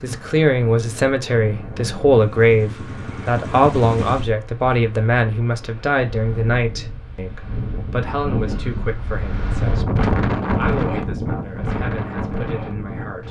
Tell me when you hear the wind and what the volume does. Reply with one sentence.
The wind can be heard from 0.0 to 13.2 s, getting louder.